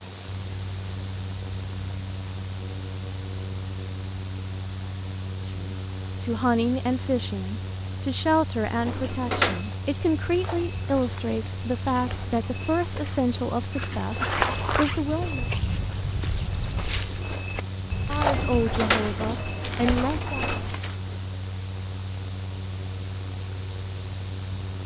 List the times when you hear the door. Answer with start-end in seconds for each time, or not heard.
8.7-9.7, 18.2-20.8.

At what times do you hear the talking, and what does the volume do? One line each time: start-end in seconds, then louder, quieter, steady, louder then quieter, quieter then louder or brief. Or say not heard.
5.5-15.4 steady
18.1-20.5 brief.